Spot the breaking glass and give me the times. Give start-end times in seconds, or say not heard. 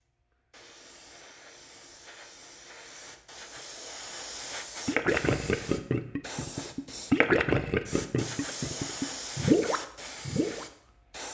not heard.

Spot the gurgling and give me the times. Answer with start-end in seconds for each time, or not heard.
4.8-10.7.